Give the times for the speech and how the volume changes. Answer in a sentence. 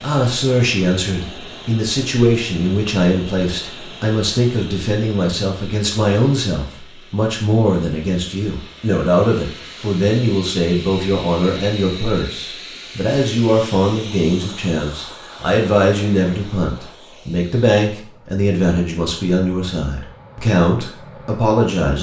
The speech can be heard from 0.0 to 21.9 s, at a steady volume.